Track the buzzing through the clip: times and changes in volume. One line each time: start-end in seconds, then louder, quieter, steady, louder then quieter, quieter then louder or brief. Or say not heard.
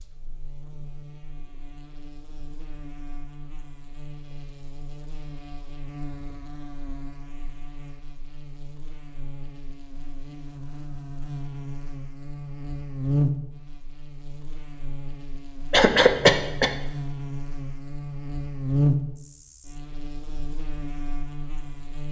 0.0-22.0 louder.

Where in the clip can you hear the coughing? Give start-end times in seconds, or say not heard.
15.7-16.8.